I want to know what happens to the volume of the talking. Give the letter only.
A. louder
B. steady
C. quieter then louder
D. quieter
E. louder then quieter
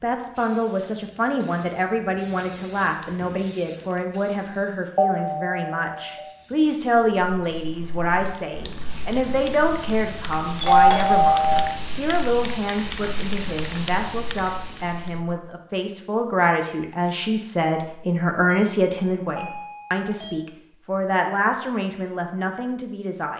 B.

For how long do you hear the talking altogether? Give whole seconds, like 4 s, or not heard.
23 s.